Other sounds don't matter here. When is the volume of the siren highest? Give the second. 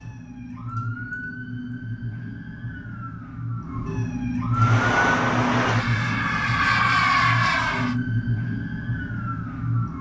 5 s.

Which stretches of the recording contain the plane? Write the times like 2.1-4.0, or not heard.
4.5-8.0.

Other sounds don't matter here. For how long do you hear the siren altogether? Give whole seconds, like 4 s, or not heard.
10 s.